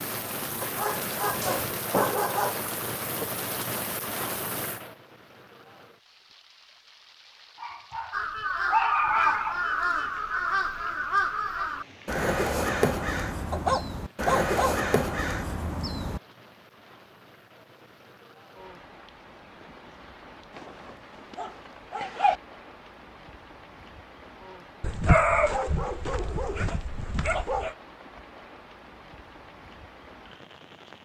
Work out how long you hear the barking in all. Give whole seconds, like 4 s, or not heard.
10 s.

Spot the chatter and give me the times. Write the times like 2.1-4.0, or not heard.
not heard.